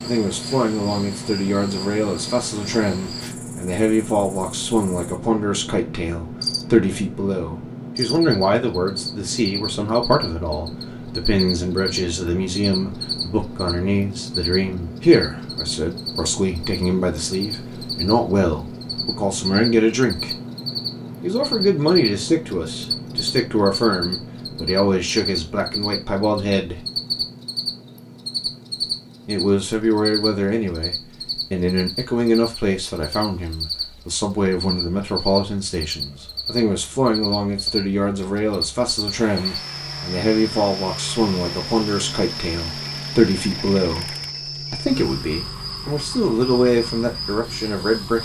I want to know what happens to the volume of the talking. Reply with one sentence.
The volume of the talking stays about the same.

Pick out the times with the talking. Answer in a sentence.
The talking can be heard from 0.0 to 20.4 s, from 21.2 to 26.8 s and from 29.2 to 48.1 s.